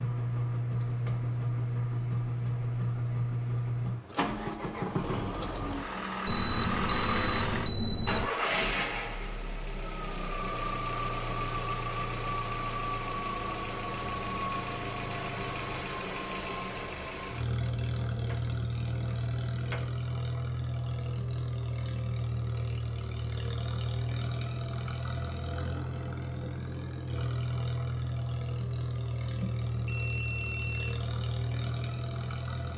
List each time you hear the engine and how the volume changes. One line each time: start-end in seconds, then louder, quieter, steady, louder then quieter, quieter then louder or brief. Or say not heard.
0.0-32.7 steady.